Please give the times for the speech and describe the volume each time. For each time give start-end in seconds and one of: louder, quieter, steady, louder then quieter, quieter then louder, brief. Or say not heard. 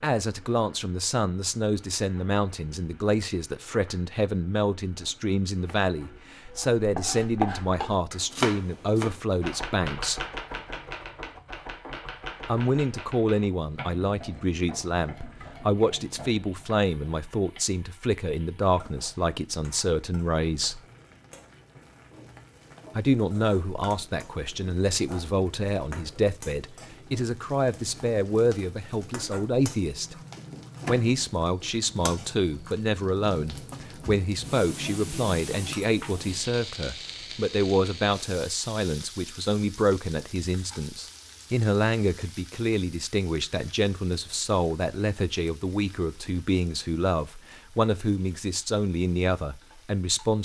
0.0-10.2 steady
12.4-20.8 steady
22.9-30.1 steady
30.9-50.4 steady.